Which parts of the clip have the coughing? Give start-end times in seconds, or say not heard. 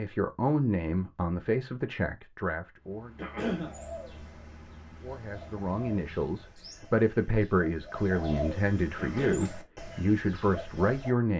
3.1-3.7, 8.9-9.5.